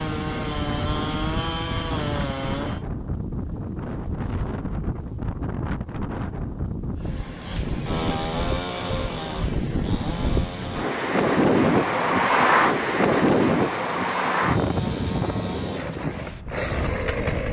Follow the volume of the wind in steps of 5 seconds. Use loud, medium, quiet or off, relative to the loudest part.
medium, medium, loud, medium.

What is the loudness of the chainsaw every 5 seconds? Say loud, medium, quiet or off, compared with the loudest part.
loud, loud, medium, loud.